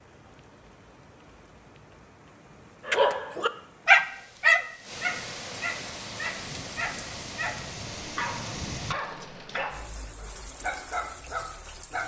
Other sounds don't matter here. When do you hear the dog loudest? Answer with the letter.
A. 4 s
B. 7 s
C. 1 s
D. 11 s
A.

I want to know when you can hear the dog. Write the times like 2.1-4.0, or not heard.
2.9-12.0.